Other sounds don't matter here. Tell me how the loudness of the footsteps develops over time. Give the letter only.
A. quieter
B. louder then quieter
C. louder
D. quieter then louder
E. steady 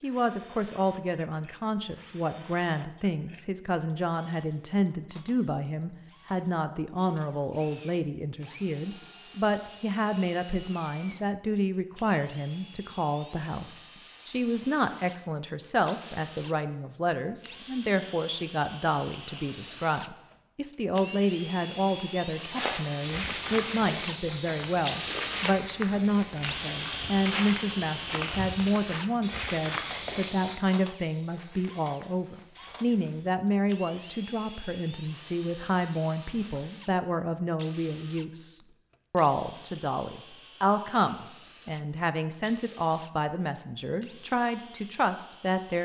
A.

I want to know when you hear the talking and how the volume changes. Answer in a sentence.
You can hear the talking from 0.0 to 45.8 s, at a steady volume.